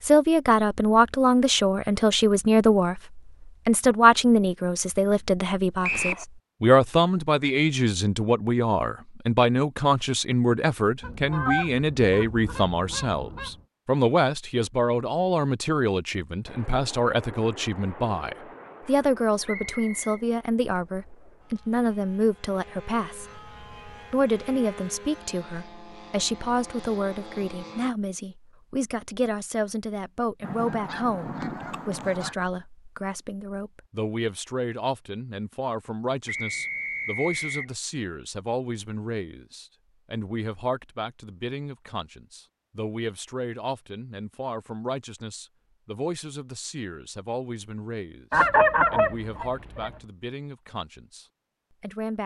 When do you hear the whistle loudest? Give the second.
6 s.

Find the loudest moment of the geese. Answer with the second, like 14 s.
49 s.